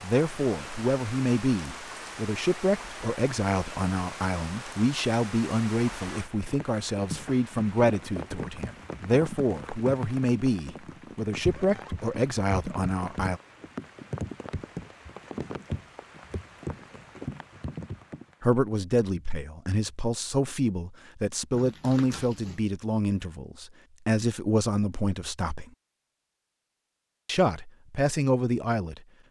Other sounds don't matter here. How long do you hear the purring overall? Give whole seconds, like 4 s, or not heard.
not heard.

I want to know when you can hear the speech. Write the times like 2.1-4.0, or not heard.
0.0-13.4, 18.4-25.6, 27.2-29.0.